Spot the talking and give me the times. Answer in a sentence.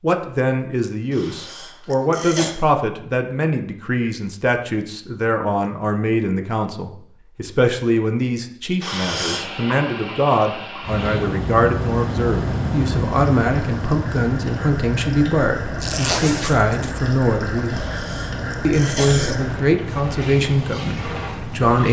You can hear the talking from 0.0 to 17.9 s and from 18.6 to 21.8 s.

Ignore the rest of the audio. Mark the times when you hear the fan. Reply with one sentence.
The fan can be heard from 10.8 to 21.8 s.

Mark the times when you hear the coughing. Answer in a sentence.
The coughing can be heard from 1.1 to 2.5 s, from 8.8 to 9.5 s and from 17.7 to 19.6 s.